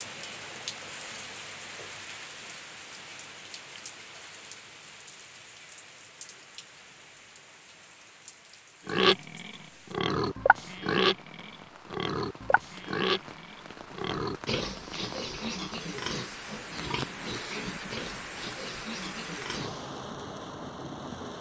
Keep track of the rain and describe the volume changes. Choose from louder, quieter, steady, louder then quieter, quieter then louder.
quieter then louder.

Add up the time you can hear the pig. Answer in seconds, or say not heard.
11 s.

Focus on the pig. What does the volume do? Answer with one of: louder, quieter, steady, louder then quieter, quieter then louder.
quieter.